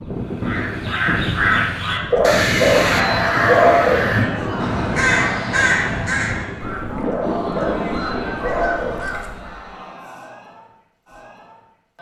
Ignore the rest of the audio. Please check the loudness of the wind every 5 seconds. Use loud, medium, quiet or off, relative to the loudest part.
loud, loud, off.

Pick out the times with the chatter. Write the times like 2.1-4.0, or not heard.
2.9-11.9.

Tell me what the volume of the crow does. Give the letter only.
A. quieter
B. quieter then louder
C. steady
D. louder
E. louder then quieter
A.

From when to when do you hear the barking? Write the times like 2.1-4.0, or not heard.
2.1-4.1, 7.0-9.1.